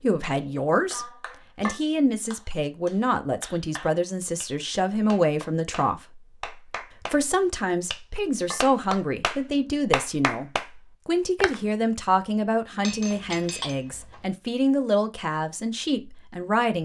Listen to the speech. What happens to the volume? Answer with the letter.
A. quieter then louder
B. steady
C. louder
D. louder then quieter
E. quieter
B.